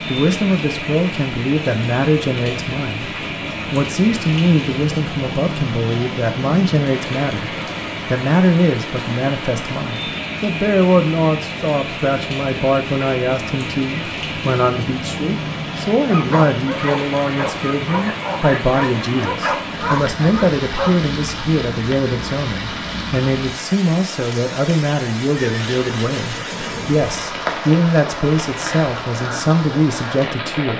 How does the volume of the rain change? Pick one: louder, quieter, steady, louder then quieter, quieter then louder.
steady.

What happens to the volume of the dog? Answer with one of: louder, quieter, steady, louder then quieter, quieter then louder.
steady.